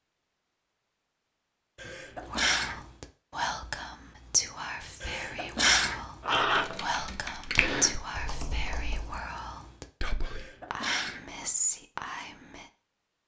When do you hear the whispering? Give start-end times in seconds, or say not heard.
2.2-12.7.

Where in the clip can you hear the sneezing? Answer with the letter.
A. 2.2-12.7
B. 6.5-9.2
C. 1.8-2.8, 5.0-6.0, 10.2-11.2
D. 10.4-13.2
C.